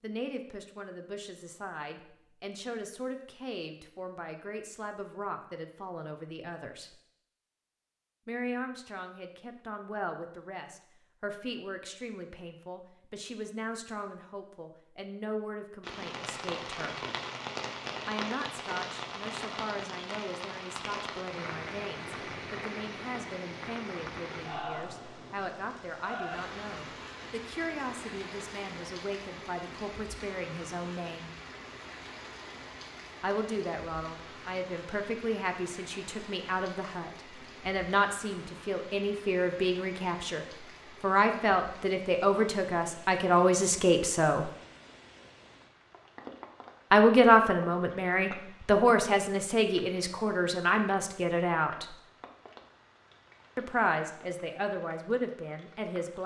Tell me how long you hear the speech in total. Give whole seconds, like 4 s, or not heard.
48 s.